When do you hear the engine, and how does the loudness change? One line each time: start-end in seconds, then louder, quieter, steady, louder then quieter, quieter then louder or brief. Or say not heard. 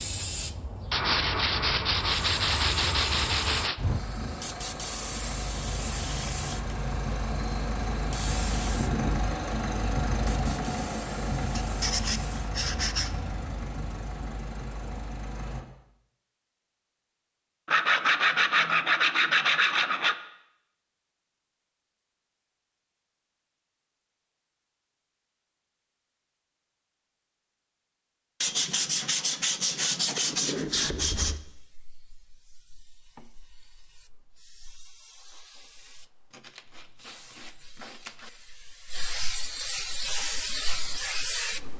3.8-15.7 louder then quieter.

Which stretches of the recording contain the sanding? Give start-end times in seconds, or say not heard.
0.9-3.8, 11.6-13.1, 17.6-20.1, 28.4-31.4, 36.3-38.3.